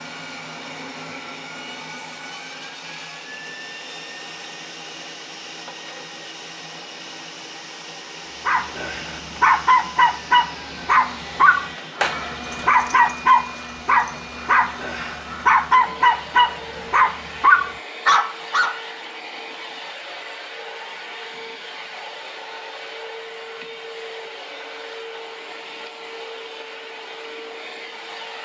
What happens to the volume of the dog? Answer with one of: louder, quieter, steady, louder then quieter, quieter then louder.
steady.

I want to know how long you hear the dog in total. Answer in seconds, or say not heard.
10 s.